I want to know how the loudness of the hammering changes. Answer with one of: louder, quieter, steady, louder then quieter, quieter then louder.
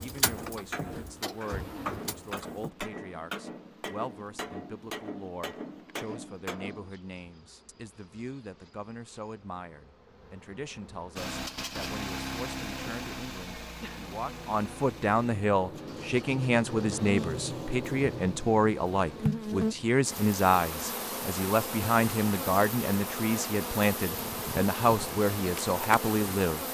steady.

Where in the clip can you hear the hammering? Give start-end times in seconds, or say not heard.
0.0-6.9.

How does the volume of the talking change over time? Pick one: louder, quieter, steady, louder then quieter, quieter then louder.
louder.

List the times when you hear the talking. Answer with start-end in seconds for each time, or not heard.
0.0-26.6.